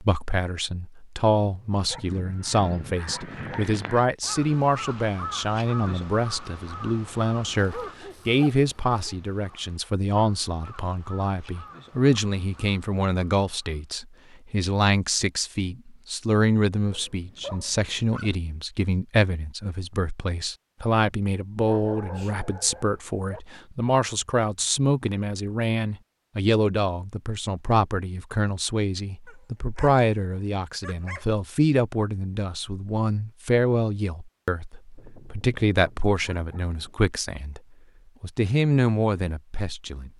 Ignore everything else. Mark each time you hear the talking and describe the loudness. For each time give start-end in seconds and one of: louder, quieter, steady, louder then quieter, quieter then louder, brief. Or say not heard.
0.0-37.6 steady
38.2-40.1 brief.